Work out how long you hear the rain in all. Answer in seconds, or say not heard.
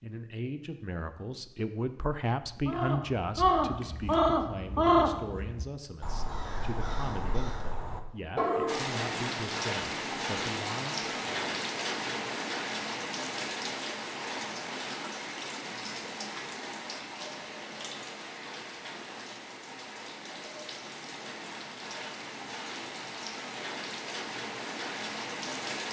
17 s.